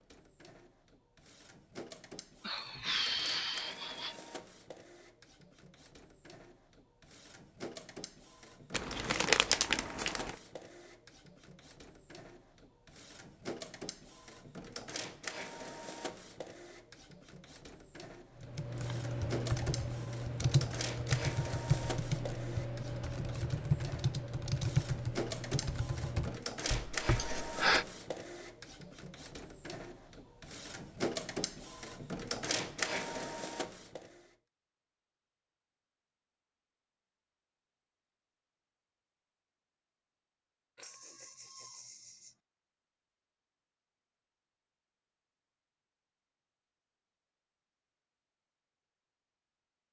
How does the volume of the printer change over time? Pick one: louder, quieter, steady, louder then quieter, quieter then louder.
louder.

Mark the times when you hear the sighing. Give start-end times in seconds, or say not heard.
2.4-4.2, 27.1-27.9, 40.8-42.4.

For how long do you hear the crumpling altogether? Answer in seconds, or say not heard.
2 s.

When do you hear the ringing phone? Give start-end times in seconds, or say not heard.
not heard.